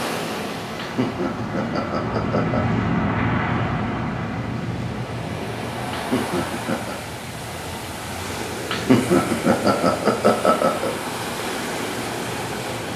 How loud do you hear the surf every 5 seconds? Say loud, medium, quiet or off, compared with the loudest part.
medium, loud, loud.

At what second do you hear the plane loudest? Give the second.
3 s.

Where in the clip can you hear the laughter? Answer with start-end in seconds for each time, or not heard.
0.8-2.6, 5.9-7.0, 8.7-10.9.